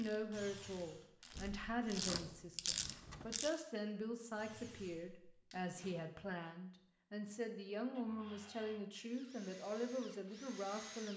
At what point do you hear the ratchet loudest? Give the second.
3 s.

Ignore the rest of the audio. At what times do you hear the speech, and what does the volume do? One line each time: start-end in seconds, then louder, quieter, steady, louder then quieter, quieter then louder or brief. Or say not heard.
0.0-11.1 steady.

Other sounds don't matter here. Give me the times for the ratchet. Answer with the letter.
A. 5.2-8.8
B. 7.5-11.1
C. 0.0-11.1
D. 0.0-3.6
D.